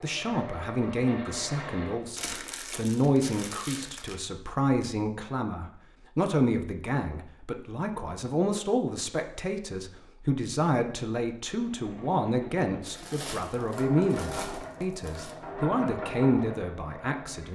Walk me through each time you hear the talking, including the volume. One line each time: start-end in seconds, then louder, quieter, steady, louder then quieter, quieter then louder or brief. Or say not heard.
0.0-17.5 steady.